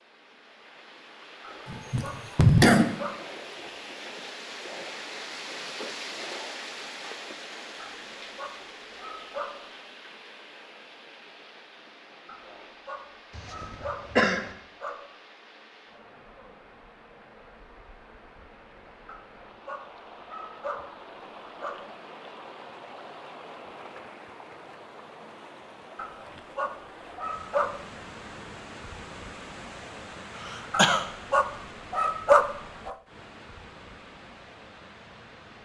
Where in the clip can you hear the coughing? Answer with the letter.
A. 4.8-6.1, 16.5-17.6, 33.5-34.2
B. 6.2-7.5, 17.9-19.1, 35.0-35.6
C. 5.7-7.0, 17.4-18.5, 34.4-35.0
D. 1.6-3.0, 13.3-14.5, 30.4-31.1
D.